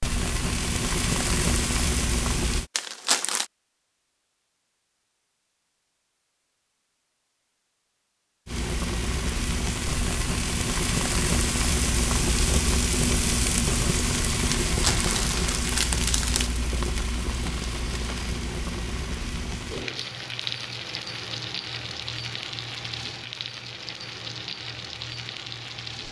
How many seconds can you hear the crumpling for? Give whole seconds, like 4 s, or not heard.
3 s.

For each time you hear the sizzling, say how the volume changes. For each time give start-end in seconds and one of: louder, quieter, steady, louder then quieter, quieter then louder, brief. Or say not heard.
0.0-2.7 brief
8.4-26.0 quieter.